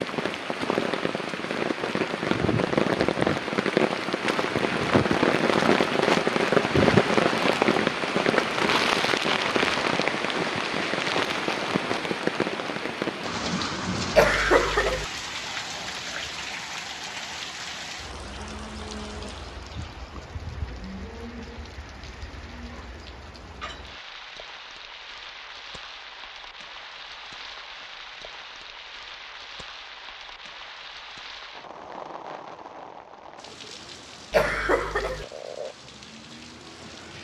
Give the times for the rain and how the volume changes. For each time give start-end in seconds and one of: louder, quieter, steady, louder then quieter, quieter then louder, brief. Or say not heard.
0.0-37.1 quieter.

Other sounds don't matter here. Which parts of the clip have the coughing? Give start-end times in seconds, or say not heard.
14.2-15.1, 34.3-35.2.